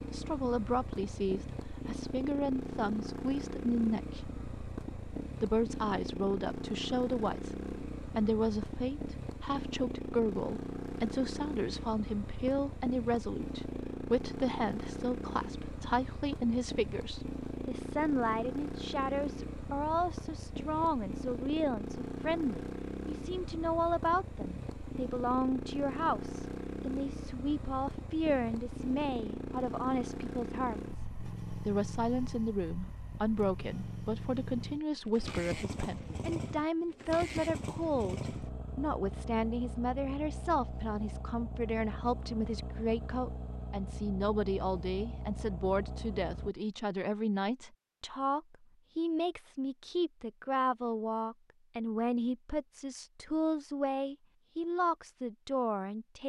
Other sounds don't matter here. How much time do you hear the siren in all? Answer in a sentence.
The siren can't be heard in this clip.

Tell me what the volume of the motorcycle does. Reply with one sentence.
The volume of the motorcycle stays about the same.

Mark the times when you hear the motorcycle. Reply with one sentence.
The motorcycle can be heard from 0.0 to 46.5 s.